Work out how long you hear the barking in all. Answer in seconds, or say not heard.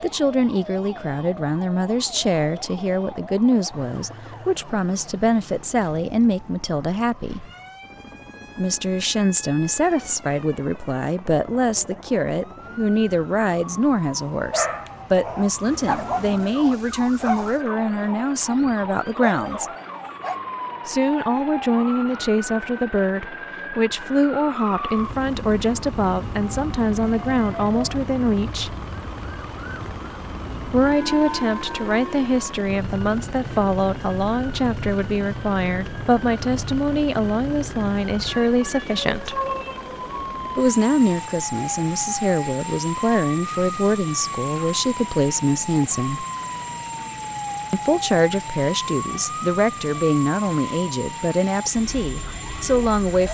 6 s.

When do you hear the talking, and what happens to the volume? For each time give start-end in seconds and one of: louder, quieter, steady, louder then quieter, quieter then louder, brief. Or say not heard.
0.0-7.4 steady
8.6-19.6 steady
20.9-28.8 steady
30.7-39.4 steady
40.5-46.2 steady
47.7-53.3 steady.